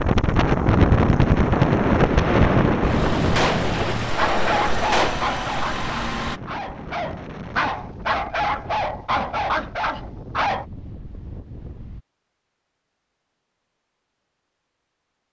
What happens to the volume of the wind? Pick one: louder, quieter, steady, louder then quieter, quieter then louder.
quieter.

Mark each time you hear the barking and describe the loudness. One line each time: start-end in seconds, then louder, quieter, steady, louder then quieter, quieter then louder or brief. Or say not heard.
4.2-10.7 quieter then louder.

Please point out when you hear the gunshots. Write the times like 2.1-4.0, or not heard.
2.1-5.2.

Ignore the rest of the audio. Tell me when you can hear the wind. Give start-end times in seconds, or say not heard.
0.0-12.1.